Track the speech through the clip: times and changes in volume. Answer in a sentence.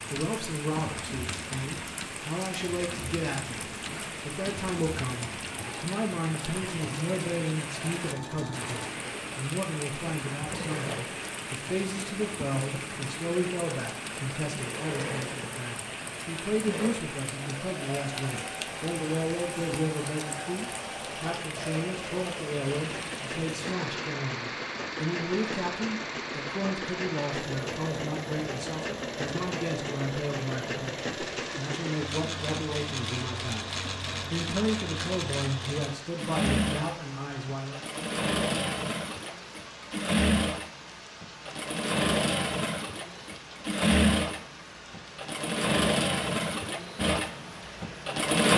The speech can be heard from 0.1 to 37.8 s, at a steady volume.